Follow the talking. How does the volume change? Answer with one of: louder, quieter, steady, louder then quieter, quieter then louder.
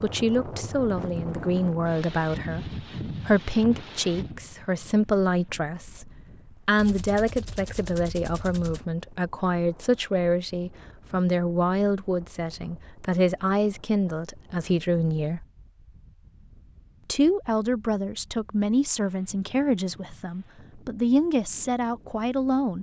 steady.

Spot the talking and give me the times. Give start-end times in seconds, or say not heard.
0.0-6.0, 6.7-15.4, 17.1-22.7.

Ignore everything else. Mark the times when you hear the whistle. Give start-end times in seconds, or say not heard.
not heard.